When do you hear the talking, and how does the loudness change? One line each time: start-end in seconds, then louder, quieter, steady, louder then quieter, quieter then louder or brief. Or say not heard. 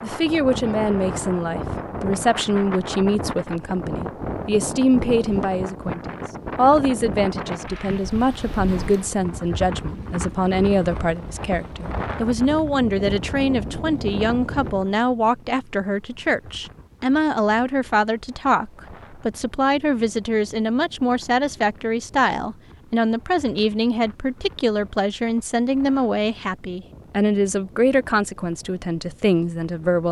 0.0-30.0 steady.